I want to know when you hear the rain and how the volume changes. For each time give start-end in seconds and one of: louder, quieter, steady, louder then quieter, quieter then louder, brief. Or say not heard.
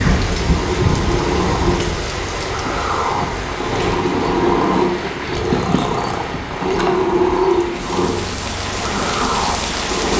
0.0-10.1 quieter then louder.